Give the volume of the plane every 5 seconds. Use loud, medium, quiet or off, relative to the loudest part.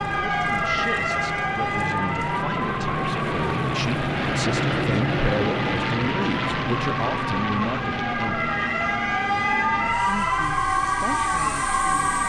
loud, loud, medium.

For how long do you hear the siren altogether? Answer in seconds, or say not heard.
12 s.